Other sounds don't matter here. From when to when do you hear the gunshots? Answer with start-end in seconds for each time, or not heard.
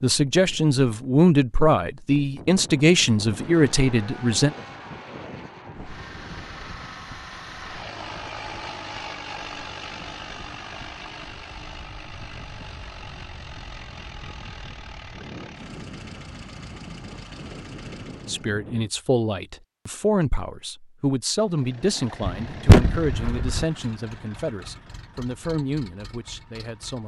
22.2-23.6.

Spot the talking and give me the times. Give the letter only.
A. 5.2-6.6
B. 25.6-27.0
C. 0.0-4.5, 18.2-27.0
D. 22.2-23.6
C.